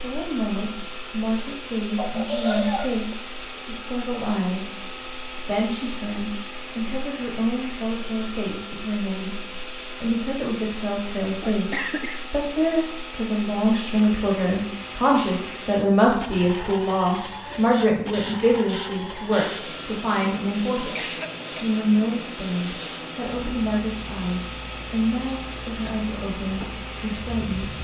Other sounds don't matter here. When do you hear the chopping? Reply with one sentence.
You can't hear the chopping here.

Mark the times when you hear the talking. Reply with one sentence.
You can hear the talking from 0.0 to 4.7 s, from 5.5 to 9.4 s, from 10.0 to 20.9 s and from 21.6 to 27.8 s.